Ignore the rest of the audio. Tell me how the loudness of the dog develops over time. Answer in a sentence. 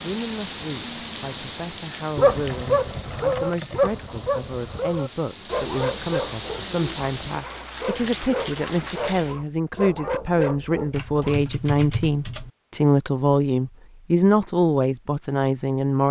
The loudness of the dog goes down.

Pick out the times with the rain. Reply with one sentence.
The rain can be heard from 0.0 to 9.4 s.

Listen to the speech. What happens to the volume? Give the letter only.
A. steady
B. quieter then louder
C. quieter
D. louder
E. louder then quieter
D.